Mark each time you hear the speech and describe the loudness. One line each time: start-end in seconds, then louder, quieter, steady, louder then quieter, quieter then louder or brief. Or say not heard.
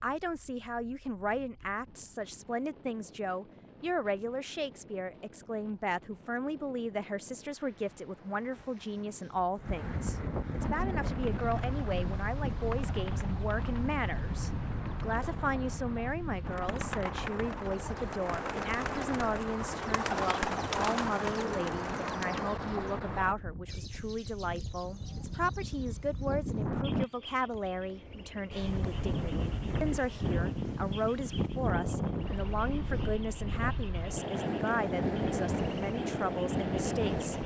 0.0-37.4 steady.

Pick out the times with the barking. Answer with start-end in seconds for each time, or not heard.
not heard.